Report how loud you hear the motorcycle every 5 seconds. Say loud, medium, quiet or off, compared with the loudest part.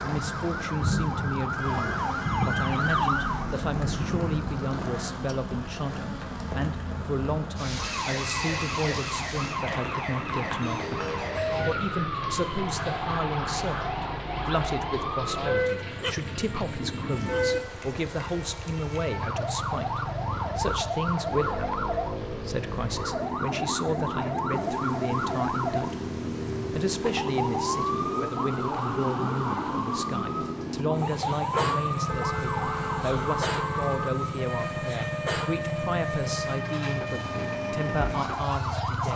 medium, medium, medium, medium, loud, loud, loud, loud.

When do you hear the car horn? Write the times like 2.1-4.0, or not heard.
1.6-2.8, 32.0-34.1.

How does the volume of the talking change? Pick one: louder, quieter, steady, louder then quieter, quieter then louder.
steady.